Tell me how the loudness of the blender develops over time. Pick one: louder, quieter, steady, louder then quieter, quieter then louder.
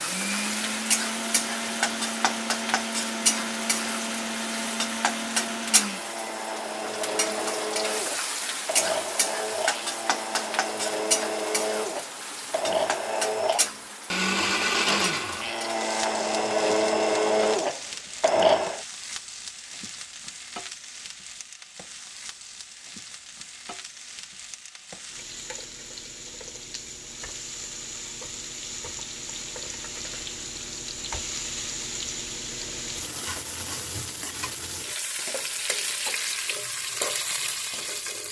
louder.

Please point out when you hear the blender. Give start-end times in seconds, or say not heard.
0.0-18.8.